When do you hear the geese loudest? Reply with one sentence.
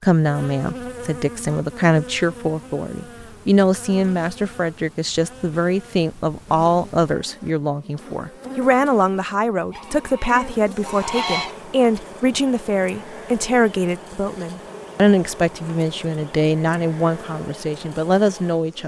The loudest moment of the geese is at 11 seconds.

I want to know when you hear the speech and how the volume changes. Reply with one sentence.
The speech can be heard from 0.0 to 18.8 s, at a steady volume.